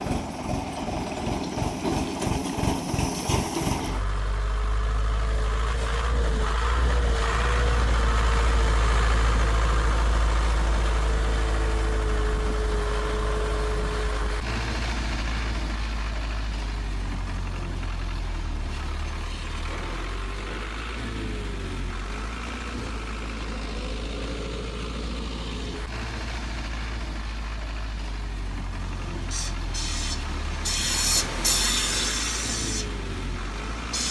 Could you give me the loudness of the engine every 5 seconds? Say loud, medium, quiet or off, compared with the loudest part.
loud, loud, loud, medium, medium, medium, medium.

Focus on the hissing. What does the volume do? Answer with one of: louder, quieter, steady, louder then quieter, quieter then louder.
louder then quieter.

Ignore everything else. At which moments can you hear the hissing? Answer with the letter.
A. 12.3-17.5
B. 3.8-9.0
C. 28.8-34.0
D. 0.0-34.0
C.